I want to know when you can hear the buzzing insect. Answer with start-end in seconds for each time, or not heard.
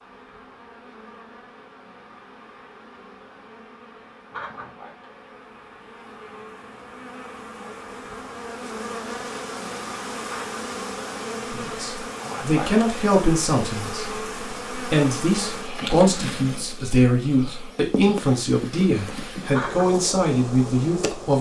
0.0-21.3.